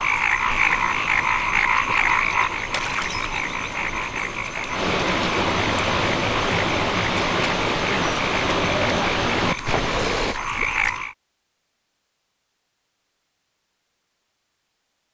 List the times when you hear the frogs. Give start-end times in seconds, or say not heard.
0.0-11.2.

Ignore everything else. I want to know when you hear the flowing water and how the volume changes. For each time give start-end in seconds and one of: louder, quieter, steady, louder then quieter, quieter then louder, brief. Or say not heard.
0.0-10.3 louder.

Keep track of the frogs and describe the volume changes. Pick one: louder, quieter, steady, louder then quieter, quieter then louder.
quieter.